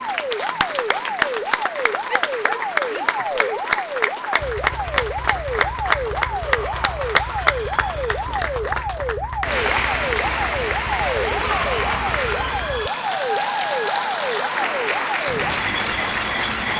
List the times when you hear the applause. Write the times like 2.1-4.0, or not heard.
0.0-16.7.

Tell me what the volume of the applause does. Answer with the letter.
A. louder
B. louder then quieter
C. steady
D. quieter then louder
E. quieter
C.